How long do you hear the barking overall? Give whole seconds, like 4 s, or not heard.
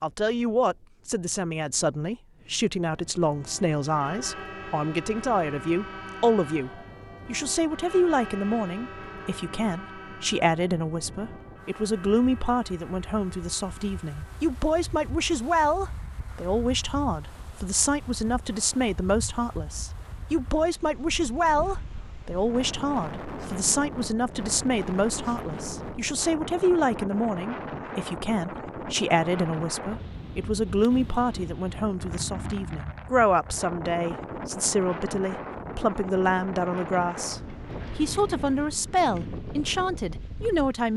not heard.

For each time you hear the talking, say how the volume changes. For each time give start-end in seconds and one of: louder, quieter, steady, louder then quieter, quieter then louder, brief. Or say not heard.
0.0-40.9 steady.